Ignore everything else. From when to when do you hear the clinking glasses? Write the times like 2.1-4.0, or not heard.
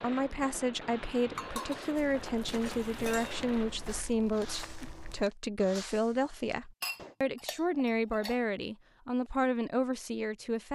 1.4-3.4, 6.8-8.4.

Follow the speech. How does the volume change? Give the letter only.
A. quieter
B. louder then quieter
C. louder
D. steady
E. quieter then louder
D.